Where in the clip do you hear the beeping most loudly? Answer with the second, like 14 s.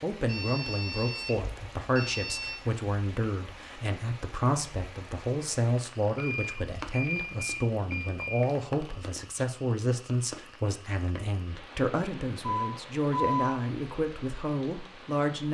13 s.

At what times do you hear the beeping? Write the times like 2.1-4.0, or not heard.
0.2-2.6, 6.2-8.4, 12.4-13.6.